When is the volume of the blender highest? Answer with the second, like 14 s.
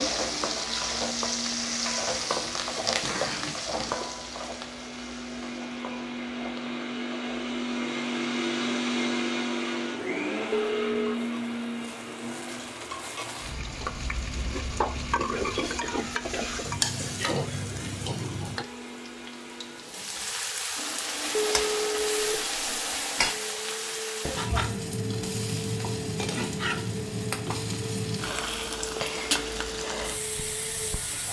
9 s.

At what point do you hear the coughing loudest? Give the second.
3 s.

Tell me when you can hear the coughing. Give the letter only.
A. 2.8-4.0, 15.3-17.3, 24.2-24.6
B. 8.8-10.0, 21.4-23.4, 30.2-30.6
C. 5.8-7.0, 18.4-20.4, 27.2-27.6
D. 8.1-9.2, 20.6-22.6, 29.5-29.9
A.